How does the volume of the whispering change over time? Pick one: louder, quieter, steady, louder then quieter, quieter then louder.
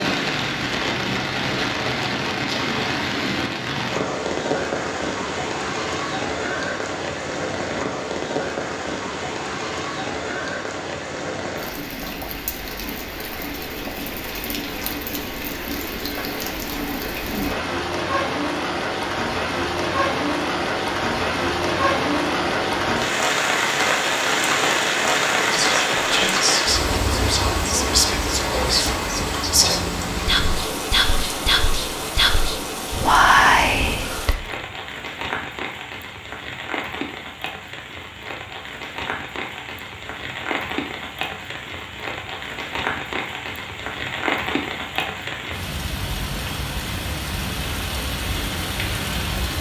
louder.